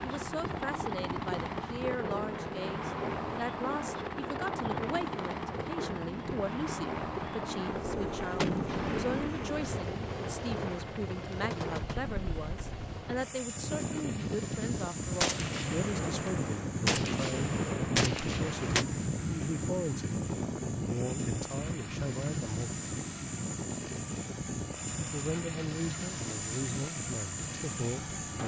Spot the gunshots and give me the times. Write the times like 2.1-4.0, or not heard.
8.3-9.8, 15.2-18.9.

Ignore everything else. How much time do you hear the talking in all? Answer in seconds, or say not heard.
26 s.